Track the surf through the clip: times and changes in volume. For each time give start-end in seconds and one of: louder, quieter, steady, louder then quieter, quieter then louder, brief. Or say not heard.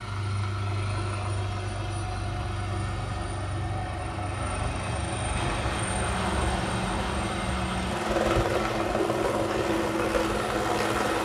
5.3-11.2 steady.